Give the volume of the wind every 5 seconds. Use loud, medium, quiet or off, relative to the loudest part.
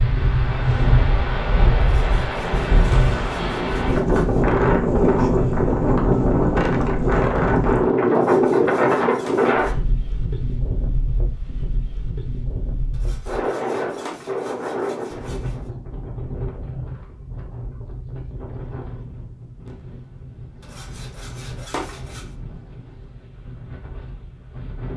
loud, loud, medium, quiet, quiet.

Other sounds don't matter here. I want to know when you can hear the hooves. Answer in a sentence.
You can't hear the hooves here.